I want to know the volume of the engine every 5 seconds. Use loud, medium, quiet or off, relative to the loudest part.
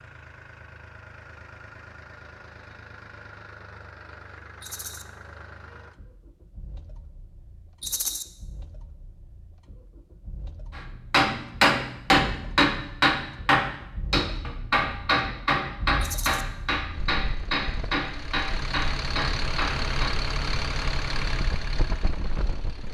quiet, quiet, quiet, loud, loud.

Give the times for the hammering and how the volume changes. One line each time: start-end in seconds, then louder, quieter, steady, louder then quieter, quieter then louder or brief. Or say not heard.
11.1-20.2 quieter.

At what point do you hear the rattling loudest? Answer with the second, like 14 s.
8 s.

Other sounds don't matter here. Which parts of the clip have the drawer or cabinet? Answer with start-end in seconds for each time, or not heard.
not heard.